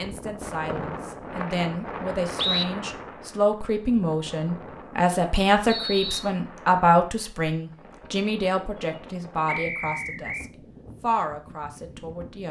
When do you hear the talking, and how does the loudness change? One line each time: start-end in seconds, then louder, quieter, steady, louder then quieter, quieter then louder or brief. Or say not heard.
0.0-12.4 louder then quieter.